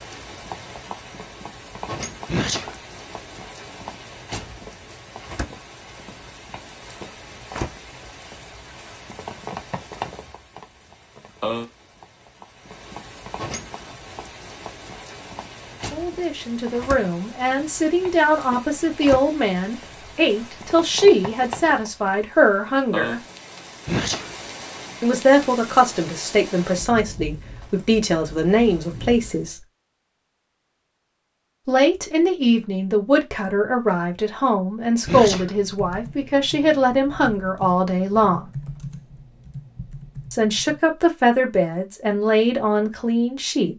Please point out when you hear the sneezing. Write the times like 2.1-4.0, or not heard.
2.2-2.8, 23.9-24.4, 35.0-35.5.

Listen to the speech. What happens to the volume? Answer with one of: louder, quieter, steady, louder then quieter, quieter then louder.
steady.